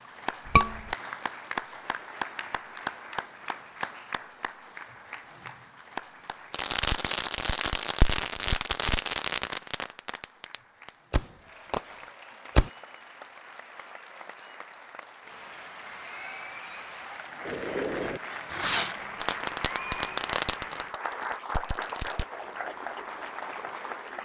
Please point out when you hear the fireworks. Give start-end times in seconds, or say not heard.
6.5-12.7, 17.4-22.2.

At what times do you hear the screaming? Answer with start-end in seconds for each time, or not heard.
0.5-0.9.